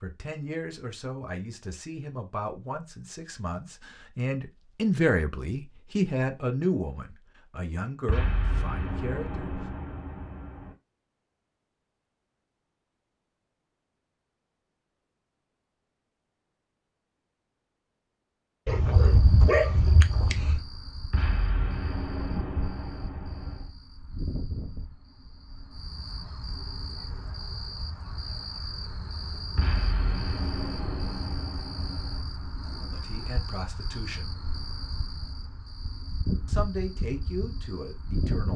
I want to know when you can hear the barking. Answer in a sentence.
The barking can be heard from 18.6 to 20.6 s.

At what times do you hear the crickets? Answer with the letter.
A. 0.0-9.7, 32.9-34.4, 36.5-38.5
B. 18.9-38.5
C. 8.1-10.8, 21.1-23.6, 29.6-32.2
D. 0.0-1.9
B.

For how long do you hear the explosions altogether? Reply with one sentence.
The explosions can be heard for 8 seconds in total.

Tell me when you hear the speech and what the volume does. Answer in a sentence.
You can hear the speech from 0.0 to 9.7 s, getting louder then quieter; briefly from 32.9 to 34.4 s; and briefly from 36.5 to 38.5 s.